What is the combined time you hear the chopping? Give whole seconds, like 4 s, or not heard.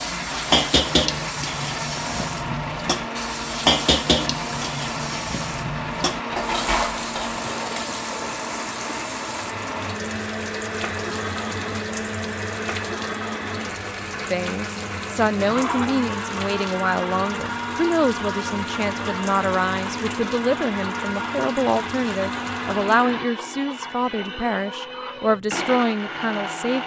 not heard.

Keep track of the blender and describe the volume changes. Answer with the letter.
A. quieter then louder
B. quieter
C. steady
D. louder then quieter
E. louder
C.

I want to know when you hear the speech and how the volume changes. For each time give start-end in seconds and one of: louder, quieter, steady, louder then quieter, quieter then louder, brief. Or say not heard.
14.3-26.8 steady.